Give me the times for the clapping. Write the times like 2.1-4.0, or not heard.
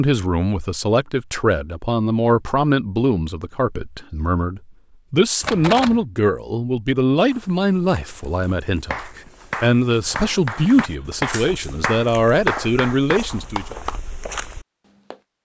8.9-14.0.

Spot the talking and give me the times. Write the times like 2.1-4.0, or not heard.
0.0-13.8.